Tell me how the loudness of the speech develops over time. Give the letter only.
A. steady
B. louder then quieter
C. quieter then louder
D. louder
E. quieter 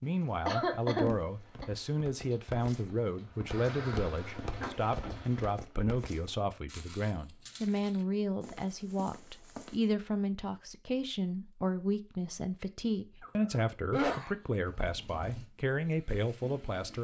A.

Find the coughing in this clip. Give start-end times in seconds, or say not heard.
0.5-1.6, 13.2-14.4.